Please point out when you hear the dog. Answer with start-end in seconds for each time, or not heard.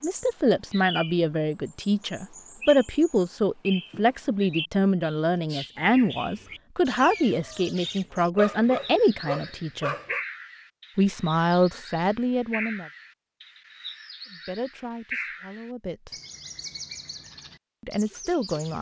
8.3-10.2.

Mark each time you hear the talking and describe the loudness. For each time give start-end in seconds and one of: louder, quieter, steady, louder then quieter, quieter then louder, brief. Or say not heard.
0.0-9.9 steady
10.9-12.8 brief
14.3-16.1 brief
17.8-18.7 brief.